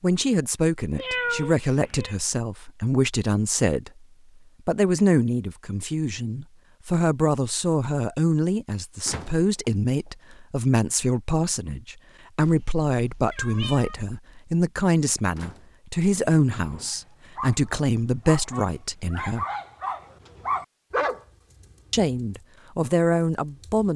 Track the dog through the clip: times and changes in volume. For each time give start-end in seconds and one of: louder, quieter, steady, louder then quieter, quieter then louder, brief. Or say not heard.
16.9-23.9 louder then quieter.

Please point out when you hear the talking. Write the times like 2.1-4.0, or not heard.
0.0-3.9, 4.7-19.4, 21.9-23.9.